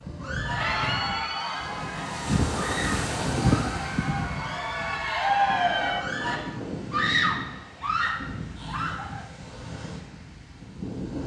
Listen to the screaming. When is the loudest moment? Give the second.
7 s.